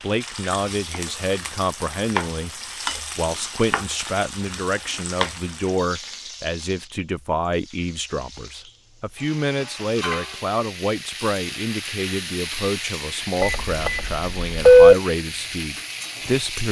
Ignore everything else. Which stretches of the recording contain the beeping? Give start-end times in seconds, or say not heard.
13.4-14.9.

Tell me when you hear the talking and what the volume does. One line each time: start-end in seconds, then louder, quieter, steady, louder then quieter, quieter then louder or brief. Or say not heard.
0.0-16.6 steady.